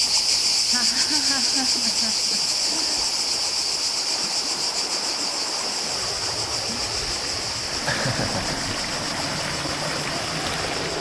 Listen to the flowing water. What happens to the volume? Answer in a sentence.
The volume of the flowing water goes up.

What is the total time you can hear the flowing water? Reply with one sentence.
You can hear the flowing water for 11 seconds altogether.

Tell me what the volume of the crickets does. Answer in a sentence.
The volume of the crickets goes down.